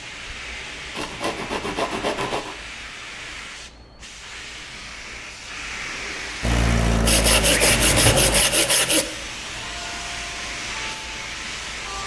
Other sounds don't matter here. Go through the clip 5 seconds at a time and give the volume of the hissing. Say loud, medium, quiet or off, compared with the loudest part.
medium, loud, loud.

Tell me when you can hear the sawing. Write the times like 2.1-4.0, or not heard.
0.9-2.5, 7.0-9.1.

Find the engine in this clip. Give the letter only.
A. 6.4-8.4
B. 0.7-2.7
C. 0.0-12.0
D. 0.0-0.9
A.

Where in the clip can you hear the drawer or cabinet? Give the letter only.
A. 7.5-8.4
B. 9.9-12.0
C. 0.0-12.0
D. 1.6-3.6
A.